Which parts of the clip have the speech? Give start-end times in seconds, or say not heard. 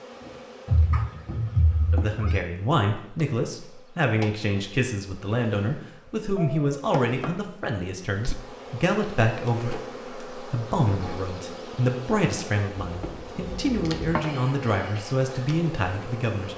1.9-16.5.